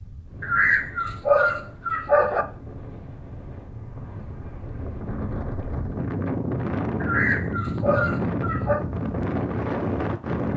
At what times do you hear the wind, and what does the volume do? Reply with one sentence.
You can hear the wind from 0.0 to 10.5 s, getting louder.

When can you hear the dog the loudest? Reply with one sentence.
The volume of the dog peaks at 1 second.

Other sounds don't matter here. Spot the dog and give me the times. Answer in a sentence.
The dog can be heard from 0.4 to 2.5 s and from 7.0 to 8.8 s.